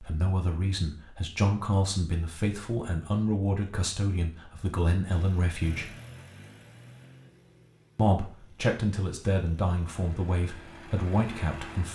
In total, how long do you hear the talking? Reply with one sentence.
The talking can be heard for 10 seconds in total.